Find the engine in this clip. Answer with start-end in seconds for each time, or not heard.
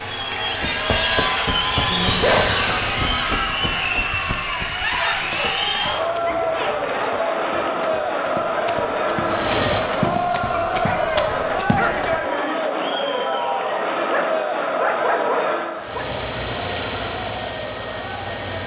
0.0-3.4, 9.2-10.9, 15.8-18.6.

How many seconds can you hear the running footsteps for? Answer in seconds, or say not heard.
12 s.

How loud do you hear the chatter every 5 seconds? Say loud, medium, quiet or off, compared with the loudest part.
loud, loud, loud, medium.